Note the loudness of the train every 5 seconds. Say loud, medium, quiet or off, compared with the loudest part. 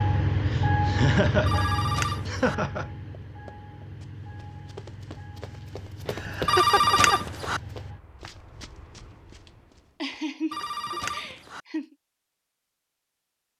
loud, quiet, off.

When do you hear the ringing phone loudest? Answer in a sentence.
The volume of the ringing phone peaks at 7 seconds.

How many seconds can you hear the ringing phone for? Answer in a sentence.
The ringing phone can be heard for 3 seconds in total.